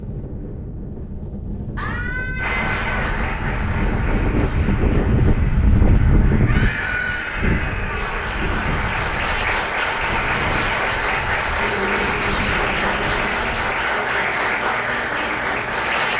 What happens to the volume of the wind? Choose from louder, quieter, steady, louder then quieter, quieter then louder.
louder then quieter.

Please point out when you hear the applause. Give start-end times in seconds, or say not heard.
2.4-16.1.